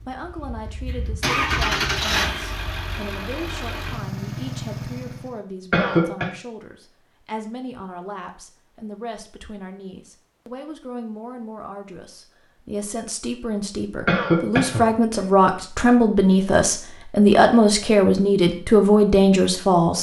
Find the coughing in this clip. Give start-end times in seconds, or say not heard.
5.7-6.2, 14.1-15.2.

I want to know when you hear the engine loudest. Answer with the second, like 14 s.
2 s.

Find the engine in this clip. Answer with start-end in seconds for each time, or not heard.
0.0-5.4.